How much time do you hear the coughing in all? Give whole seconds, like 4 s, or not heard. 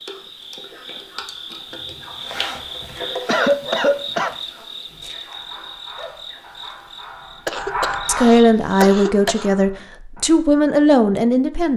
3 s.